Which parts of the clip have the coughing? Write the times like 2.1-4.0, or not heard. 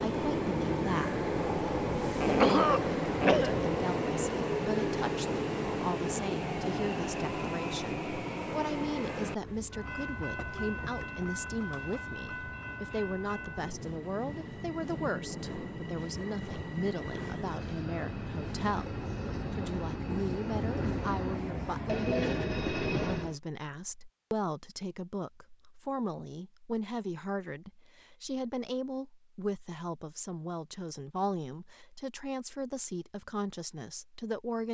2.2-3.5.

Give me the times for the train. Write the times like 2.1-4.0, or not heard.
0.0-23.4.